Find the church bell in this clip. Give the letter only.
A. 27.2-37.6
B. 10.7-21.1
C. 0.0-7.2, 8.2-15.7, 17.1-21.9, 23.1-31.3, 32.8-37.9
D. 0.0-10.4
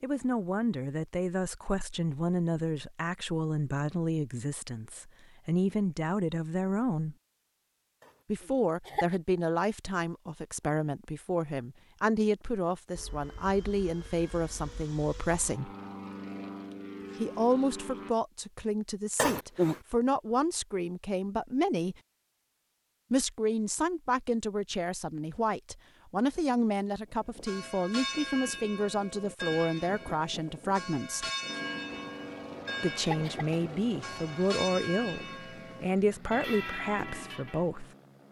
A.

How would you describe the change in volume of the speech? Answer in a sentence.
The volume of the speech stays about the same.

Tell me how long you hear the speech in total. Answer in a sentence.
The speech can be heard for 33 seconds in total.